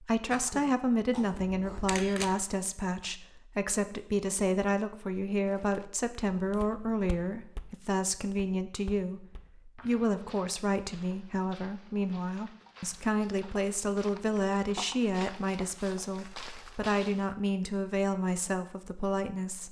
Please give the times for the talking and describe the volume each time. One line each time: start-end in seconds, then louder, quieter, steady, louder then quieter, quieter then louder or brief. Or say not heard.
0.0-19.6 steady.